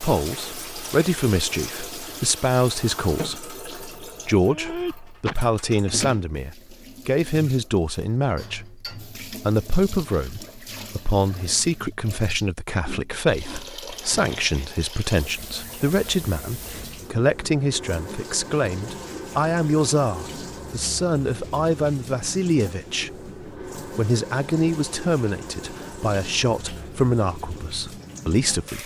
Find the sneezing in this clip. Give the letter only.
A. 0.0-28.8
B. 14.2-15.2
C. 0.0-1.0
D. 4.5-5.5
D.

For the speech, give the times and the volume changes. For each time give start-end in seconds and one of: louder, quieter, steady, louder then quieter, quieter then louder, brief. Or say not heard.
0.0-28.8 steady.